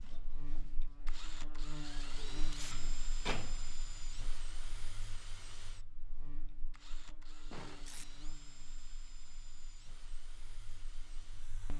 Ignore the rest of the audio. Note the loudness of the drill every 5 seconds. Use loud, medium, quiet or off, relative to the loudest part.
loud, medium, medium.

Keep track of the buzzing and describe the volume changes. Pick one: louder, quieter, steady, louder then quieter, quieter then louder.
quieter.